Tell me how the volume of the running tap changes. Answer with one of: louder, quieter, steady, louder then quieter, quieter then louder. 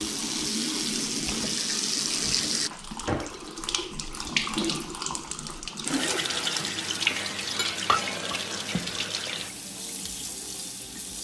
quieter.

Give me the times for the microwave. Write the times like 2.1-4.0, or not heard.
not heard.